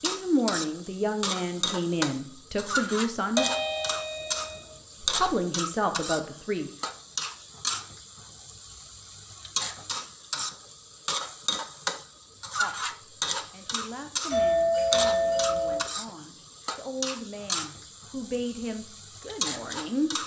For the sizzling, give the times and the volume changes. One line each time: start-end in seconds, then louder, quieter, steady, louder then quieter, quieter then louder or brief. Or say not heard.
0.0-20.2 steady.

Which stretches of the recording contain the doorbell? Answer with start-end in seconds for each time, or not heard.
3.4-5.2, 14.3-15.8.